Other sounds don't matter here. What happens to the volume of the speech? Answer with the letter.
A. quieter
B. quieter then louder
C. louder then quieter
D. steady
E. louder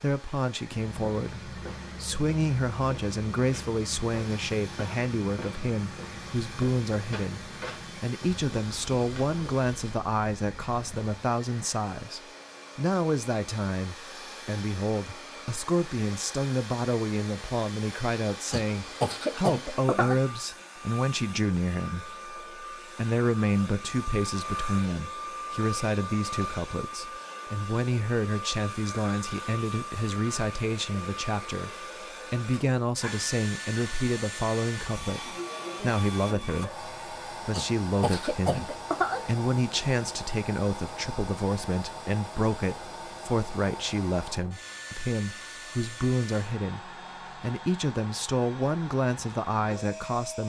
D.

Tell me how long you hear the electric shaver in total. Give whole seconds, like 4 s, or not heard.
not heard.